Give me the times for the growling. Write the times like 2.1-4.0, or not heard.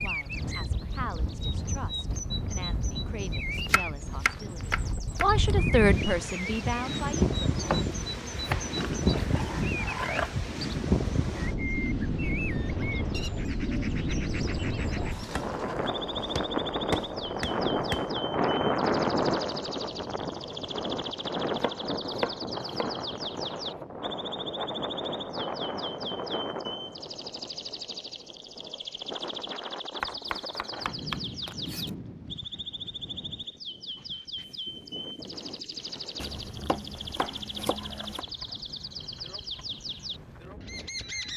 8.8-10.3, 14.4-16.1, 36.5-38.5.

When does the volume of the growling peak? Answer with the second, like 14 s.
10 s.